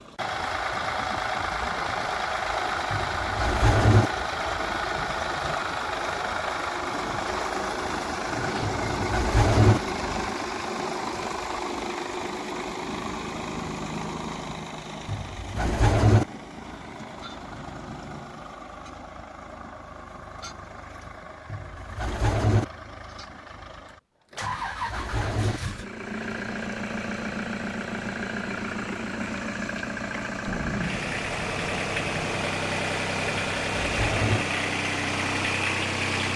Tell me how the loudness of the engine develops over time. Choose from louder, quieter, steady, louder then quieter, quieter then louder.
quieter then louder.